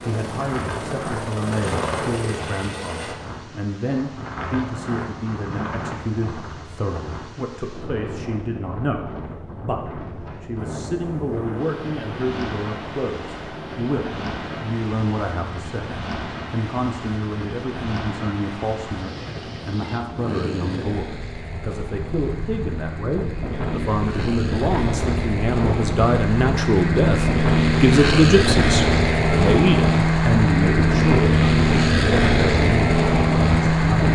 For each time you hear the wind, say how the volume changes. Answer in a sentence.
The wind can be heard from 0.0 to 34.0 s, getting louder.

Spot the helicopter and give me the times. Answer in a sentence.
The helicopter can be heard from 0.0 to 3.1 s and from 10.6 to 34.0 s.